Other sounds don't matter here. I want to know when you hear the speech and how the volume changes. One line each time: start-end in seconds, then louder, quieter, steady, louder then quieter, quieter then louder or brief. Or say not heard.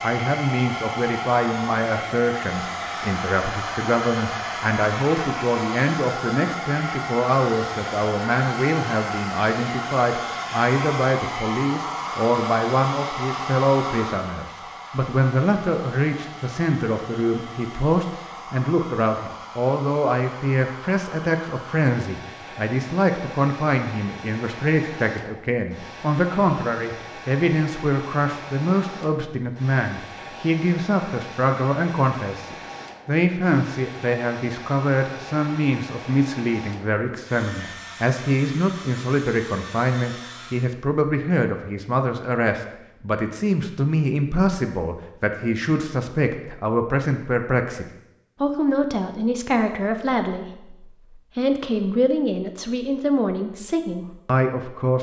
0.0-54.9 steady.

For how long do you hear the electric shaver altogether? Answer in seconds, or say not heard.
not heard.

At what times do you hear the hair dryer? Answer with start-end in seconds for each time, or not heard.
0.0-40.8.